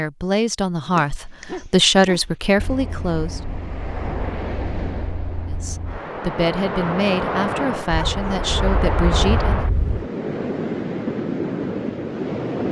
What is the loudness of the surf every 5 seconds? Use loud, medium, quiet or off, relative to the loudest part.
medium, loud, loud.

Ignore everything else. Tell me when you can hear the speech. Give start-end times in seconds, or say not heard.
0.0-3.4, 5.5-9.7.